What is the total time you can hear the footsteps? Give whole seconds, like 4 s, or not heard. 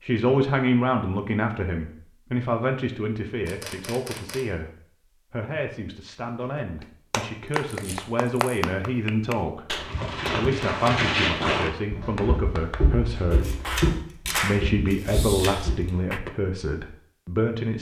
6 s.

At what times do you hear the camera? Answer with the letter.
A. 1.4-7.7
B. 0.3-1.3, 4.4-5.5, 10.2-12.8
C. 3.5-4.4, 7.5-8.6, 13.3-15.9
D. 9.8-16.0
C.